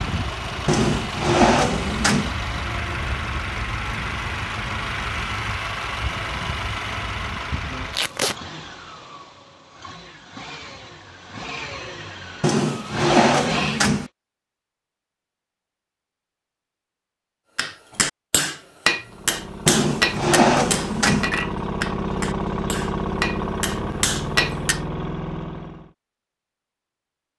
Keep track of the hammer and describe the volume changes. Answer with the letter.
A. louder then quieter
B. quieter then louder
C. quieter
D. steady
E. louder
B.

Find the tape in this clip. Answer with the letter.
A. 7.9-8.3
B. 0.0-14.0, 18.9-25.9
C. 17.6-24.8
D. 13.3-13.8
A.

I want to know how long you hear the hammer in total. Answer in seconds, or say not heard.
7 s.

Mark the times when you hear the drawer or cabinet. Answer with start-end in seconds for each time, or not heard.
0.7-2.4, 12.4-14.1, 19.6-21.3.